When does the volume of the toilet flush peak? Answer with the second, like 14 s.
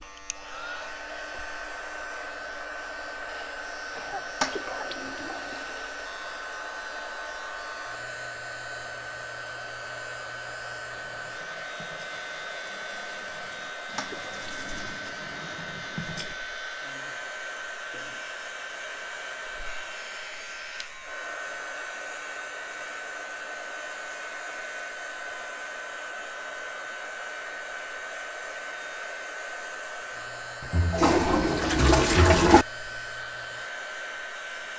32 s.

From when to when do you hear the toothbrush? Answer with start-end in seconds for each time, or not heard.
10.9-16.4.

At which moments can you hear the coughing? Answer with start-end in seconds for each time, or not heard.
4.0-5.5.